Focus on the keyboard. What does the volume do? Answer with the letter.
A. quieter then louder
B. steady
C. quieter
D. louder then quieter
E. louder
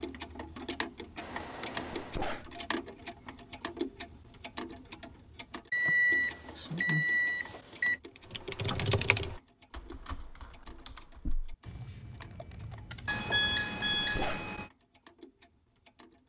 A.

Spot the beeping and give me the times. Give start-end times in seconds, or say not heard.
1.1-2.2, 5.7-8.0, 13.1-14.7.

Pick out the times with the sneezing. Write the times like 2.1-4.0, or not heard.
1.9-2.6, 13.9-14.5.